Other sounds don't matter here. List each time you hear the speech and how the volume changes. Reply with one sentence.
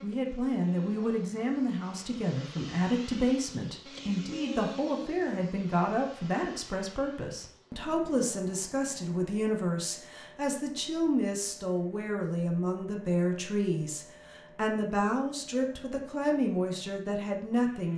The speech can be heard from 0.0 to 17.9 s, at a steady volume.